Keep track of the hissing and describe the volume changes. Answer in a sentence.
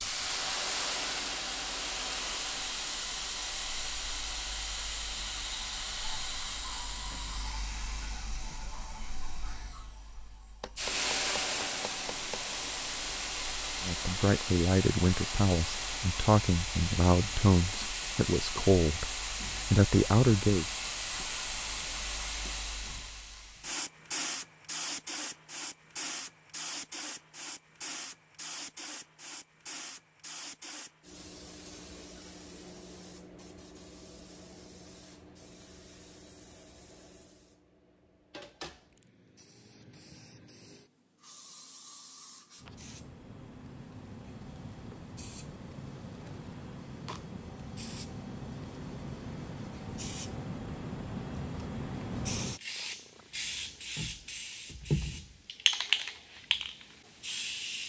The loudness of the hissing goes down, then up.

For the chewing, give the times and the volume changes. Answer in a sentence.
The chewing can't be heard in this clip.